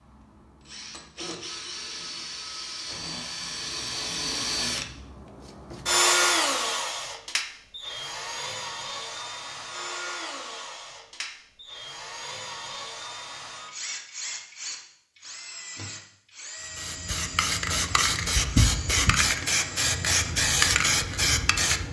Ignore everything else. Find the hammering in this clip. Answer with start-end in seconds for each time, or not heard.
not heard.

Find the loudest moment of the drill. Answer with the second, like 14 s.
6 s.